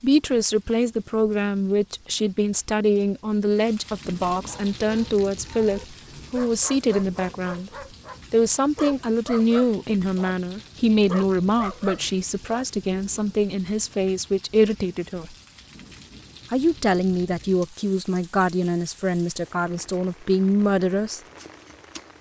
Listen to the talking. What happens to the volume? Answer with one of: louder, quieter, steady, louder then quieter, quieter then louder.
steady.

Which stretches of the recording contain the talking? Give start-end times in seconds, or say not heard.
0.0-7.7, 8.3-15.3, 16.5-21.2.